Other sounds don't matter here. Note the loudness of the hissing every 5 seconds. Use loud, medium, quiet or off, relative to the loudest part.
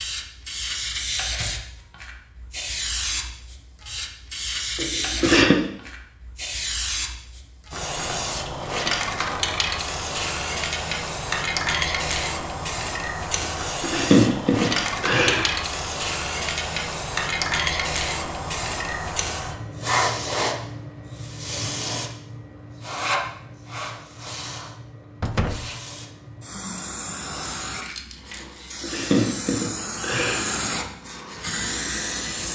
loud, loud, loud, loud, loud, medium, loud.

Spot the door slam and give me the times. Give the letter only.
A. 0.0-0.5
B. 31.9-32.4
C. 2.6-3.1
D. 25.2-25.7
D.